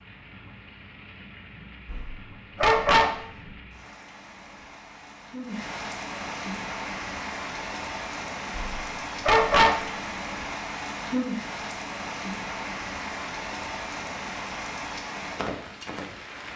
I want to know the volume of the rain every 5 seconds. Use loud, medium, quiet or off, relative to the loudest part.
quiet, loud, loud, loud.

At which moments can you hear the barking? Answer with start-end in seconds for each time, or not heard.
1.9-3.1, 8.6-9.8.